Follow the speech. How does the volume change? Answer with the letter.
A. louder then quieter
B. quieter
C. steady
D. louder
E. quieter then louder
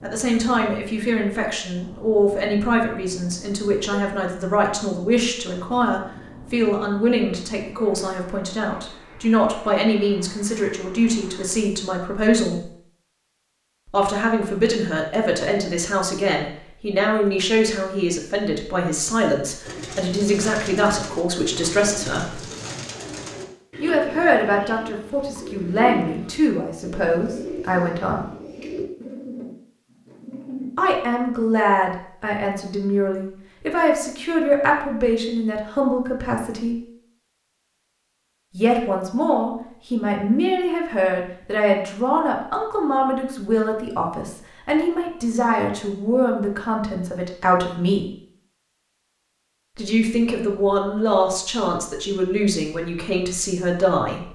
C.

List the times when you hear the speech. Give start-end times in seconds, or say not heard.
0.0-12.7, 13.9-22.4, 23.8-28.2, 30.8-36.8, 38.5-48.0, 49.8-54.3.